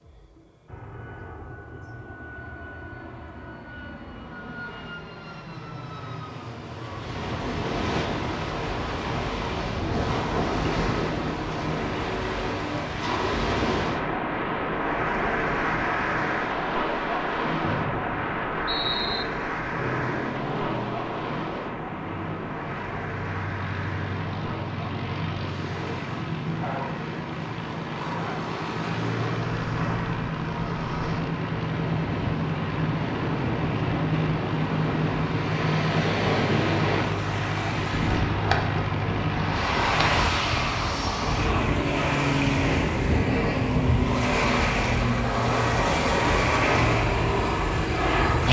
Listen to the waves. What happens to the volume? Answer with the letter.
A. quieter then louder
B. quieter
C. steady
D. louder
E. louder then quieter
A.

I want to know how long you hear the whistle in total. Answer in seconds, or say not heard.
2 s.